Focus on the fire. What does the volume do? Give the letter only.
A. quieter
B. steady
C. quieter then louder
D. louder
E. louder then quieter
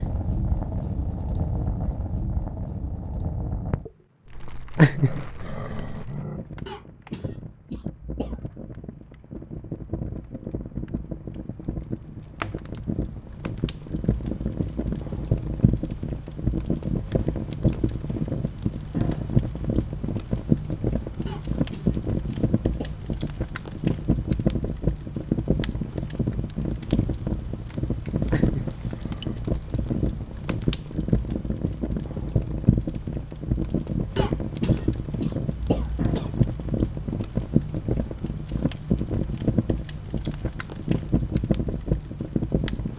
D.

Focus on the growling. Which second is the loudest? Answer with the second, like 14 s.
5 s.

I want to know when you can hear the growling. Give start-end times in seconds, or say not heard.
4.8-6.4, 28.3-29.4.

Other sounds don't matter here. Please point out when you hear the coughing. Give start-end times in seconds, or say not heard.
6.7-8.6, 21.2-23.1, 34.1-36.4.